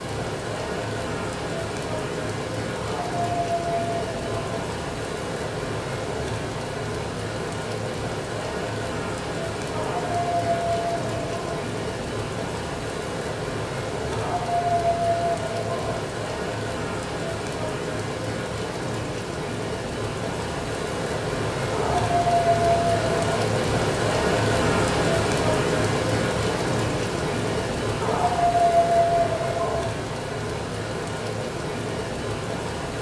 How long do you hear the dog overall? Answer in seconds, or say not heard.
9 s.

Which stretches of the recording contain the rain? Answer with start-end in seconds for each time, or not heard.
0.0-32.9.